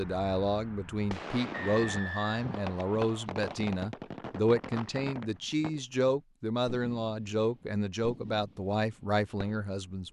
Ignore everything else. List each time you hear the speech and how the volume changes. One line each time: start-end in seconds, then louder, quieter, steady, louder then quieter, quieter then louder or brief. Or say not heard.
0.0-10.0 steady.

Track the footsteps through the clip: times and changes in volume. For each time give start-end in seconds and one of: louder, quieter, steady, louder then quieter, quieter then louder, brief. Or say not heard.
not heard.